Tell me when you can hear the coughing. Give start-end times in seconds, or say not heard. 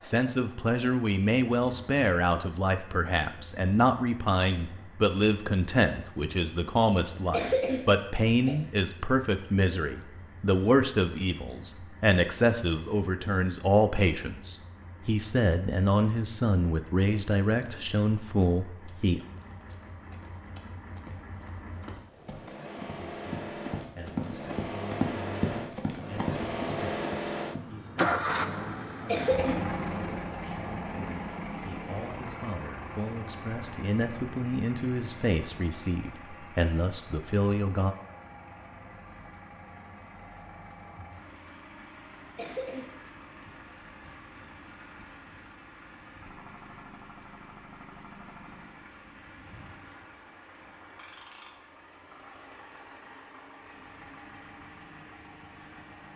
7.3-8.6, 29.1-29.6, 42.4-42.9.